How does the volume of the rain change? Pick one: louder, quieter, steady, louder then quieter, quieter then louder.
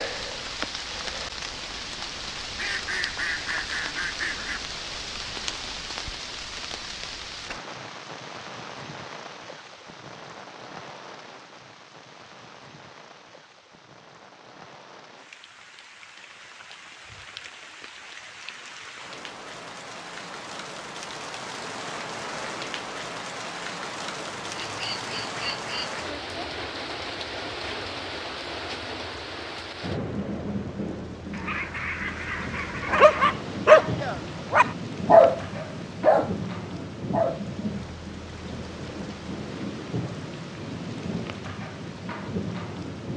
quieter then louder.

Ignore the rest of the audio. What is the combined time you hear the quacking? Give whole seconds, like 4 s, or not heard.
6 s.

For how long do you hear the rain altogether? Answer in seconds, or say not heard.
43 s.